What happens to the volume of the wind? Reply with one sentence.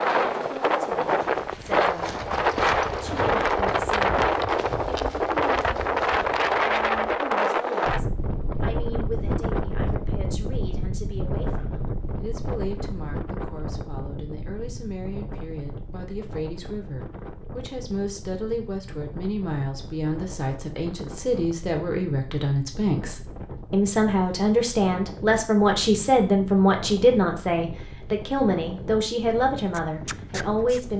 The volume of the wind goes down.